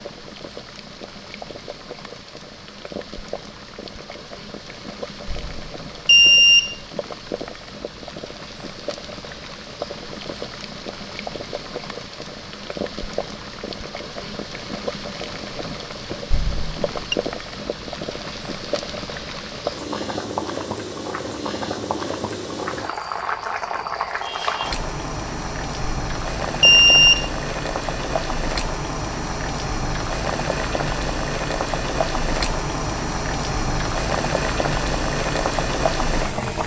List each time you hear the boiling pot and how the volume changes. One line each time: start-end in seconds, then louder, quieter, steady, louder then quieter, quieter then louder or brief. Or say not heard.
0.0-36.6 louder.